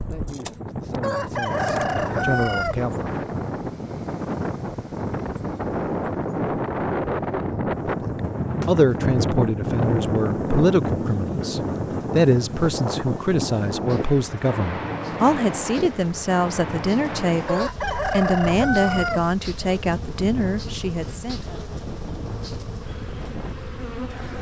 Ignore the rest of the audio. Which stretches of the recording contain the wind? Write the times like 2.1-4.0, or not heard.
0.0-24.3.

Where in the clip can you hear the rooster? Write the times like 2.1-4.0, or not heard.
1.0-2.8, 17.4-19.2.